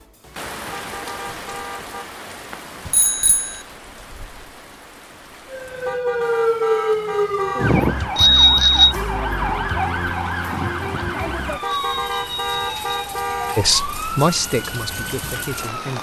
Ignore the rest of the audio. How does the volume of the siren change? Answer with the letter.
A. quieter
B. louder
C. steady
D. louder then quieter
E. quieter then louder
A.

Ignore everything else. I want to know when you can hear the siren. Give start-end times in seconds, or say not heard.
5.5-15.9.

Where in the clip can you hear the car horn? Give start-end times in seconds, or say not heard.
0.7-2.0, 5.8-7.8, 11.6-13.7.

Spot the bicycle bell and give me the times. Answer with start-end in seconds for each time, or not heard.
2.9-3.6, 8.2-8.9, 11.7-13.2.